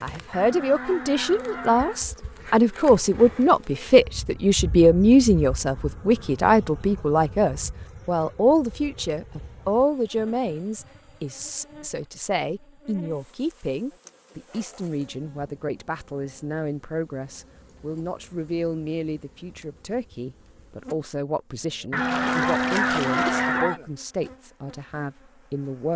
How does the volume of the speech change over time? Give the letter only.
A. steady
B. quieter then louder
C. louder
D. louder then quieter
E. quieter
E.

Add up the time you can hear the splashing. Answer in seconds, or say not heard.
2 s.